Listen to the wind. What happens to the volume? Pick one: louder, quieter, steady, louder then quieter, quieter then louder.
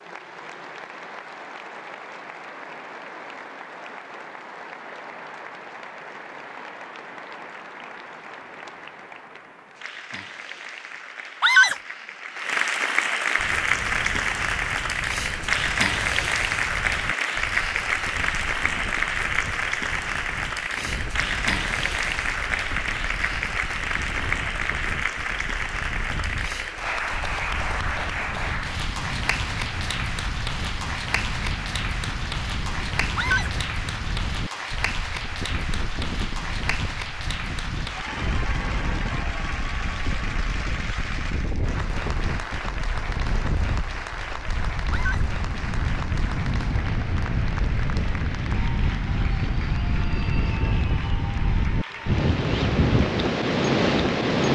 louder.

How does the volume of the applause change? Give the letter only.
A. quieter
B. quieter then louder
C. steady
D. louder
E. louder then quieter
E.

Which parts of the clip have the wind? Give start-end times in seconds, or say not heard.
13.3-54.4.